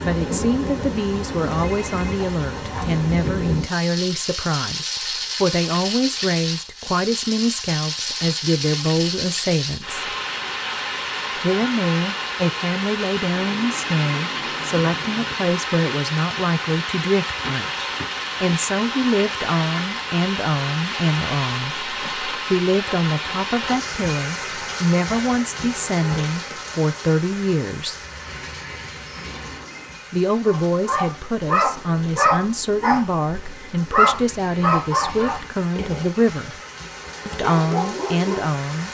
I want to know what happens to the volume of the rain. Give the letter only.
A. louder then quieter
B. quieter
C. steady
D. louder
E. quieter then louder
B.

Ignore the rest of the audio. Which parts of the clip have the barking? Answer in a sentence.
The barking can be heard from 30.4 to 38.5 s.